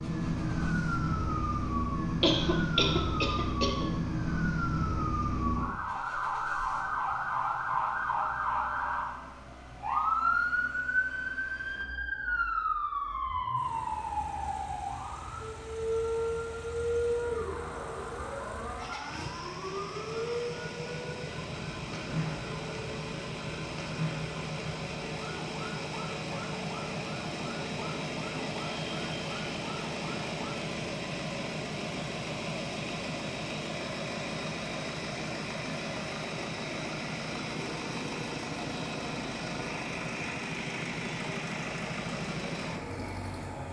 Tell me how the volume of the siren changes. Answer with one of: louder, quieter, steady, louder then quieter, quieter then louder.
quieter.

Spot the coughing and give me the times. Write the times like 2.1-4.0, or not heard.
2.2-3.9.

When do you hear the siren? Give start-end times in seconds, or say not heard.
0.0-30.5.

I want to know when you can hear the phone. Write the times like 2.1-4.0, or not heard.
not heard.